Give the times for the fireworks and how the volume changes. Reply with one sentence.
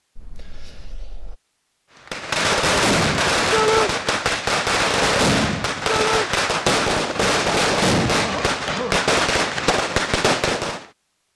You can hear the fireworks from 2.0 to 10.8 s, at a steady volume.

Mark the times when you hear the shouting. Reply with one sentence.
The shouting can be heard from 3.5 to 4.0 s and from 5.8 to 6.3 s.